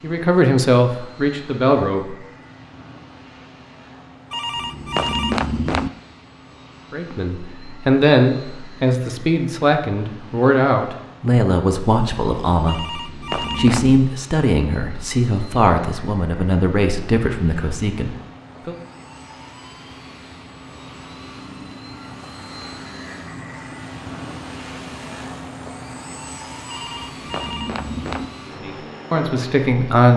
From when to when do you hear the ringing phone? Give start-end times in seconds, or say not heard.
4.3-5.9, 12.7-14.1, 26.6-28.3.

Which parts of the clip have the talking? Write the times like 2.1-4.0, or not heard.
0.0-2.1, 6.9-18.8, 28.4-30.1.